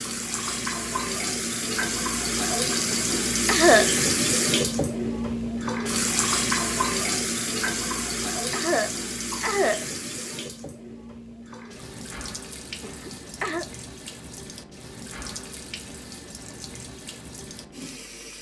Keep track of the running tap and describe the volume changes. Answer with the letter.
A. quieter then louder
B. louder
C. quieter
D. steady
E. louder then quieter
C.